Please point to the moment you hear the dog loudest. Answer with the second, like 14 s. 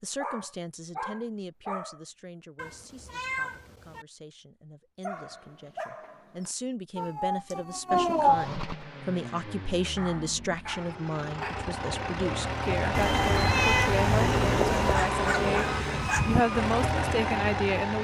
16 s.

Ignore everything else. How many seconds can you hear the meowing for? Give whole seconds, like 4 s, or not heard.
5 s.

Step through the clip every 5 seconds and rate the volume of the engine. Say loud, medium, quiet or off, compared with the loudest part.
off, medium, loud, loud.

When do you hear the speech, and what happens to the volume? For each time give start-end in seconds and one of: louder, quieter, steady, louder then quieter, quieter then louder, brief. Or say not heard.
0.0-15.7 quieter then louder
16.2-17.9 brief.